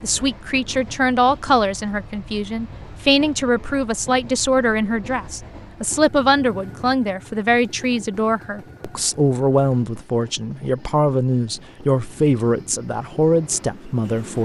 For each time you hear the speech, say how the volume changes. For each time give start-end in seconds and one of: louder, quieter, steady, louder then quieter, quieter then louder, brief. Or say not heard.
0.0-14.3 steady.